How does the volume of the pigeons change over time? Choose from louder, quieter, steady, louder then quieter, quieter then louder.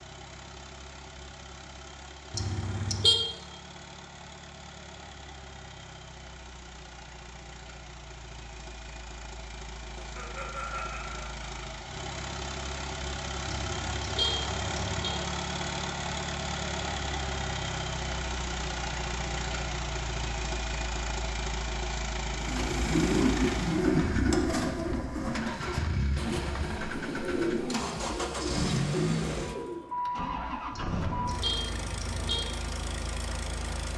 quieter.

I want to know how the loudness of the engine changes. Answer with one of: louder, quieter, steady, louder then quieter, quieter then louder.
louder.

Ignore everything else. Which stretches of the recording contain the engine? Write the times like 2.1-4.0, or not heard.
0.0-33.9.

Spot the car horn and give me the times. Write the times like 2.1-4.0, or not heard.
2.3-3.2, 13.4-15.1, 30.7-32.4.